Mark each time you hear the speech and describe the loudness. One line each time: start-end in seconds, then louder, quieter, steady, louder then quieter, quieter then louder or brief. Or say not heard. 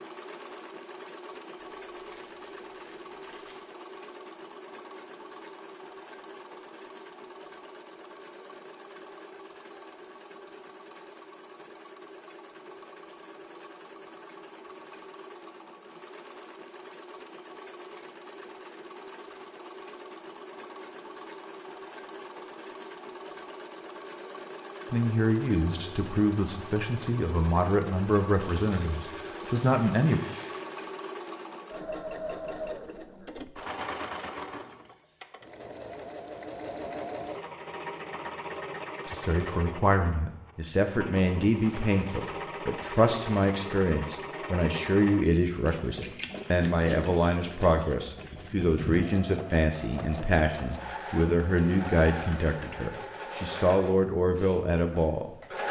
24.9-30.2 steady
39.0-55.6 steady.